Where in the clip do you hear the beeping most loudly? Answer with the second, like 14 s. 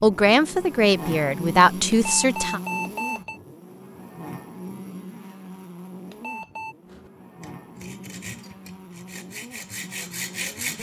3 s.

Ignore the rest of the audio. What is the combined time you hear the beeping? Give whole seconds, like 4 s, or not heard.
2 s.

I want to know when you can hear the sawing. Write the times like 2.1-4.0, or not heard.
6.8-10.7.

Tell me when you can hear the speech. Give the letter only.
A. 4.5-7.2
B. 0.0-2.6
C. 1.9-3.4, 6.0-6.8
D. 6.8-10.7
B.